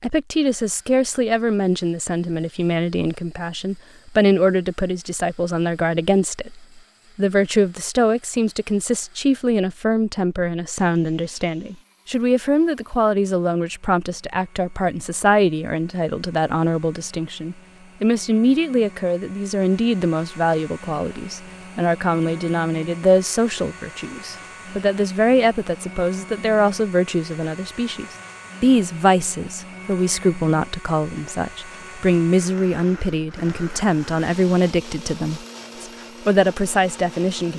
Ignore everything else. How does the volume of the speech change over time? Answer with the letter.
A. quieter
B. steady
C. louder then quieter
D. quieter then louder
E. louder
B.